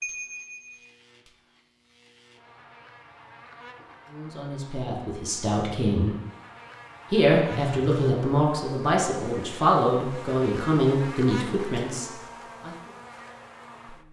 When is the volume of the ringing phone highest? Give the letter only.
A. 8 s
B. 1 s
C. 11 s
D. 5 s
A.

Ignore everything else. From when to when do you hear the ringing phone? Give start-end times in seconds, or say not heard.
0.0-0.8, 7.5-8.2.